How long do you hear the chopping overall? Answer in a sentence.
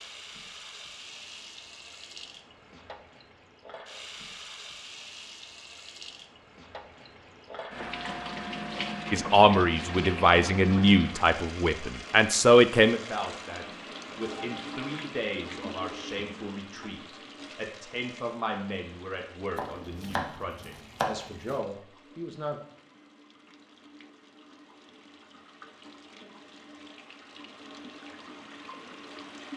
The chopping can be heard for 2 seconds in total.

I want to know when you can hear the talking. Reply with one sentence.
The talking can be heard from 9.1 to 22.6 s.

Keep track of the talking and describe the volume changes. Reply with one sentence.
The loudness of the talking goes down.